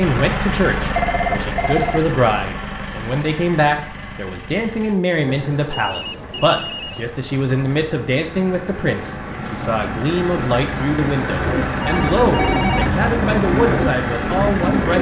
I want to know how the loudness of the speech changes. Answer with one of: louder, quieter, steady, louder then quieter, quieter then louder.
steady.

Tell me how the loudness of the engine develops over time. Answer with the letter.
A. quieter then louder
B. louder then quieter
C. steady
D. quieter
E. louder
A.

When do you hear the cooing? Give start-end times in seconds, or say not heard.
11.4-14.9.